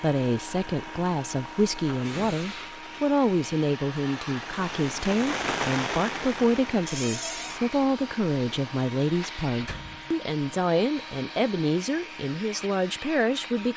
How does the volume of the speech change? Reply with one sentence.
The loudness of the speech stays about the same.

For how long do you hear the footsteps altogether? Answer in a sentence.
You can't hear the footsteps here.